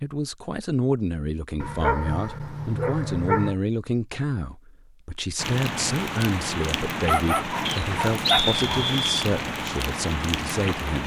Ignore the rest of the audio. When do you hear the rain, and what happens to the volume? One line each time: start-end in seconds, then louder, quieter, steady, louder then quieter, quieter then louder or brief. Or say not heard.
5.3-11.0 steady.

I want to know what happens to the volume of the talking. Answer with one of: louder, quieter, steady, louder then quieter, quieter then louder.
steady.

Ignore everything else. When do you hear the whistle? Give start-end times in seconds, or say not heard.
7.7-9.2.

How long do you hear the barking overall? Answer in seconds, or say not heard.
4 s.